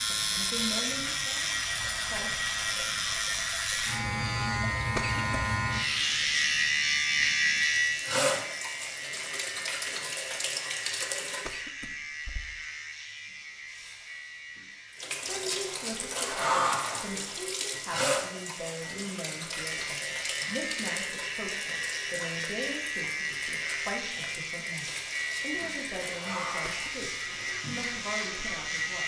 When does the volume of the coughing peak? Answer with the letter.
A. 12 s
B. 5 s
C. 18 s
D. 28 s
B.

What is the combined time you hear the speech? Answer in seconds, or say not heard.
16 s.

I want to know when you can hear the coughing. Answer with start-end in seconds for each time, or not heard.
5.0-5.4, 11.4-12.4, 26.6-27.1.